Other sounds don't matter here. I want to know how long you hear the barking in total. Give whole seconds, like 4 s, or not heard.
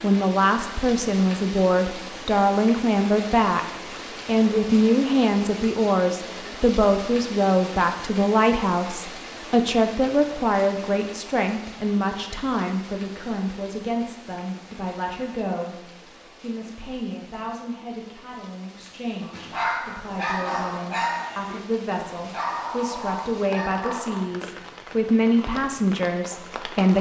5 s.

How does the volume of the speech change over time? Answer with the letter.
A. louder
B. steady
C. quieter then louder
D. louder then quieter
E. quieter
C.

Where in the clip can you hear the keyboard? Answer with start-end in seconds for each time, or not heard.
not heard.